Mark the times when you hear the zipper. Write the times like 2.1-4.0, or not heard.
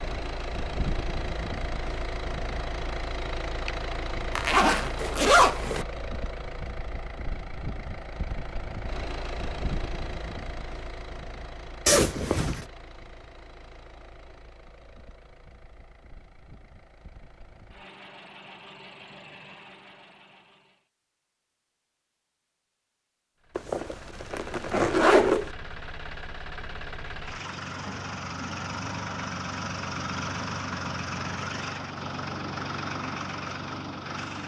4.3-5.8, 11.8-12.7, 23.6-25.5.